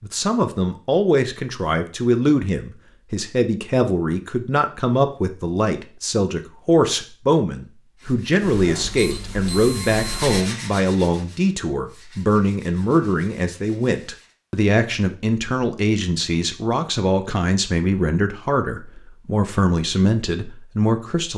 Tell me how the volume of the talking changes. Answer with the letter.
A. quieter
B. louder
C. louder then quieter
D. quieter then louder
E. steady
E.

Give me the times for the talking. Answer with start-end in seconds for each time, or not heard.
0.0-21.3.